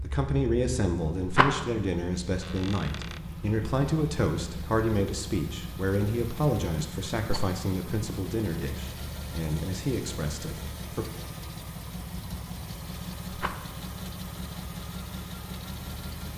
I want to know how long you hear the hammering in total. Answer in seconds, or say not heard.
not heard.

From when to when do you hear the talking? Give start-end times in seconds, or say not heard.
0.0-11.1.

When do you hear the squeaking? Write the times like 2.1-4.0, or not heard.
2.4-3.3.